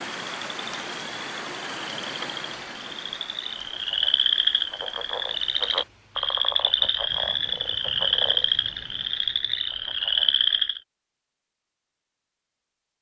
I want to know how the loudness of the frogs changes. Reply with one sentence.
The loudness of the frogs goes up.